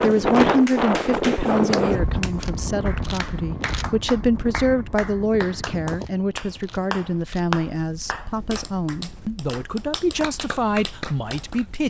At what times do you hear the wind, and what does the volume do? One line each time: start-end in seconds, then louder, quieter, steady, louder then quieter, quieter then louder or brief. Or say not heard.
0.0-11.8 quieter.